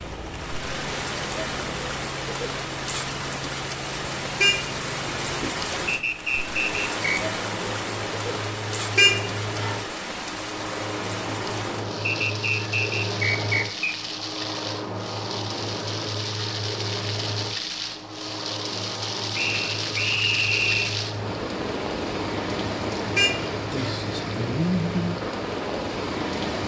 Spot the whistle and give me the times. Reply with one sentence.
The whistle can be heard from 5.8 to 7.3 s, from 12.1 to 13.8 s and from 19.3 to 21.0 s.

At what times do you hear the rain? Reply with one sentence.
The rain can be heard from 0.0 to 26.6 s.